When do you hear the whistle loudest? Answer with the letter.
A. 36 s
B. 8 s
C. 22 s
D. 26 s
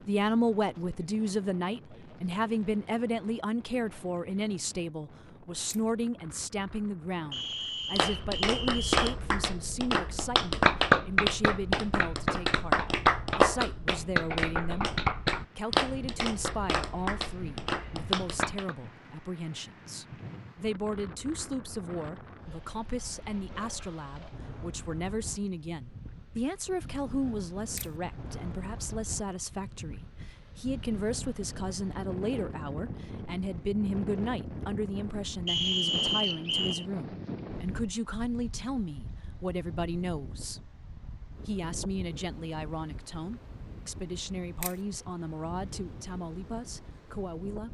A.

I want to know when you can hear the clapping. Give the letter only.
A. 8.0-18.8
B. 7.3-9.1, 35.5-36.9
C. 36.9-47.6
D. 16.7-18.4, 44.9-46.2
A.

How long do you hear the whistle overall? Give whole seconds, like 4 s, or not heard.
3 s.